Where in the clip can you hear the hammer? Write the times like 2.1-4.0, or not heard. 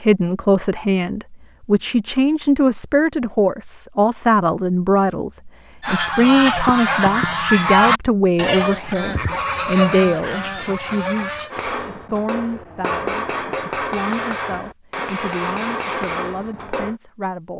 11.5-16.9.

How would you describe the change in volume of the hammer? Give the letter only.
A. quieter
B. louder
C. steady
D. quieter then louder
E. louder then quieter
B.